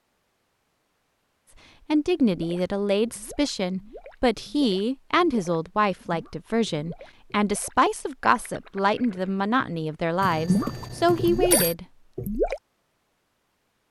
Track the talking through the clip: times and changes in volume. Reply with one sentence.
You can hear the talking from 1.9 to 11.8 s, at a steady volume.